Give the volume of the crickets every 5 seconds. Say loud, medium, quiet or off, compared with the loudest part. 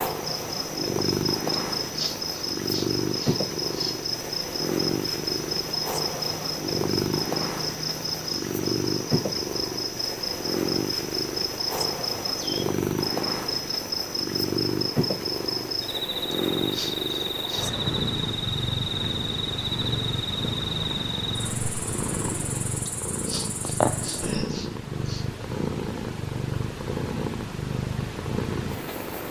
loud, loud, loud, loud, loud, off.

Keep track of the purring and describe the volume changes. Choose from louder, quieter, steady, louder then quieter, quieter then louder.
steady.